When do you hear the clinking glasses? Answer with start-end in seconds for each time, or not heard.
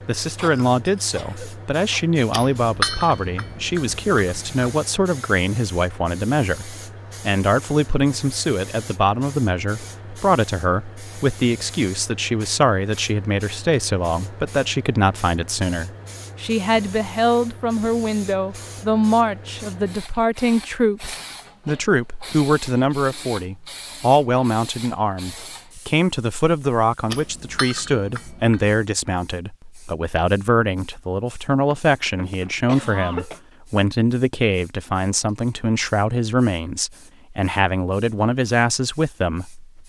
2.3-4.7, 27.1-28.8.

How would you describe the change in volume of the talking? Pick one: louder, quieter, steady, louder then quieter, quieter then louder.
steady.